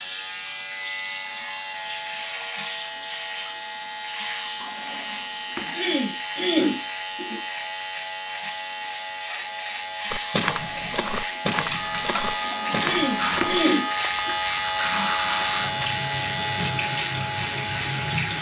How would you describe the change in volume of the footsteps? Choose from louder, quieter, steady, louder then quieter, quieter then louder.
quieter.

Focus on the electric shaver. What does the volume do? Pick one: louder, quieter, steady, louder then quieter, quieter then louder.
louder.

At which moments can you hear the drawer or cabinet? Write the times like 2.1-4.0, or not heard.
4.5-5.8, 12.3-13.6.